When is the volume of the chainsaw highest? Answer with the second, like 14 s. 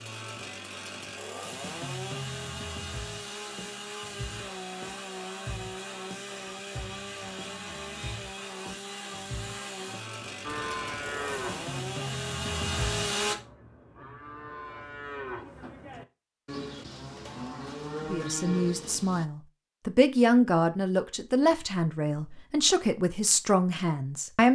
13 s.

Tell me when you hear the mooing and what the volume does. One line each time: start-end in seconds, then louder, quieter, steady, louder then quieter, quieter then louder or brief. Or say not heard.
10.4-19.2 quieter then louder.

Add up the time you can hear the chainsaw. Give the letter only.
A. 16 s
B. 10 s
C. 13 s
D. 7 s
C.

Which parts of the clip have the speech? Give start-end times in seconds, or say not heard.
18.1-24.5.